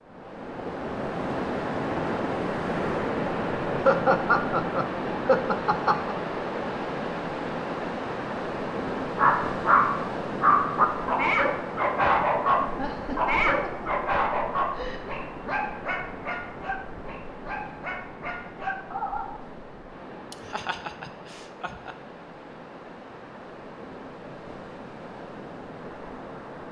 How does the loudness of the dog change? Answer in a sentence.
The loudness of the dog goes down.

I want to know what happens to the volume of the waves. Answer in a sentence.
The volume of the waves goes down.